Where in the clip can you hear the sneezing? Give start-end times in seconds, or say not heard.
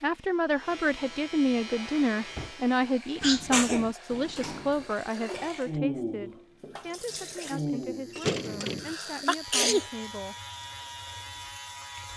3.2-4.0, 8.6-9.8.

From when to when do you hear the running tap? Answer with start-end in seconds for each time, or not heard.
1.6-12.1.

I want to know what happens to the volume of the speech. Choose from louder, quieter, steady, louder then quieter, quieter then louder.
quieter.